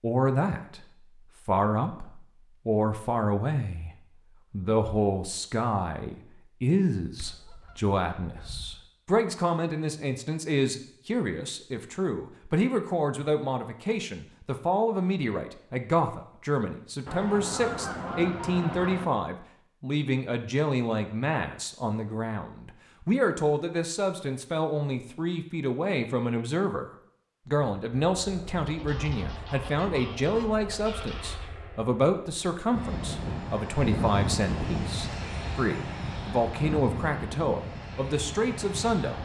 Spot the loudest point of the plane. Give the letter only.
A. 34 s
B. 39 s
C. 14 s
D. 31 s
A.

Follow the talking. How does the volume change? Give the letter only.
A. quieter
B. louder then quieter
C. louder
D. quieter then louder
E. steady
E.